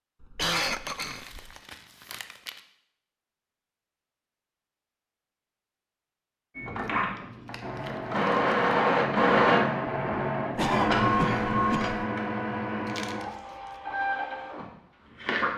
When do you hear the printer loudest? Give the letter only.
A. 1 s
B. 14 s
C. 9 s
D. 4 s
C.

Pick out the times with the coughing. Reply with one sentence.
The coughing can be heard from 0.2 to 1.5 s and from 10.6 to 12.1 s.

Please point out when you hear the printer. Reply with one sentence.
The printer can be heard from 6.5 to 15.5 s.